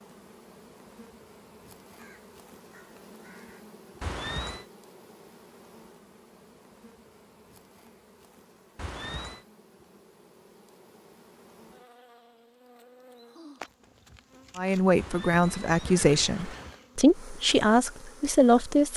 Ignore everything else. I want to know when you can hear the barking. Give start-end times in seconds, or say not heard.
not heard.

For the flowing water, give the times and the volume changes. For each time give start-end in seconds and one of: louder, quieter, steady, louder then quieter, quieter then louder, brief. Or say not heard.
not heard.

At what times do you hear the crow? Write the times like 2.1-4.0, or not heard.
1.9-3.6.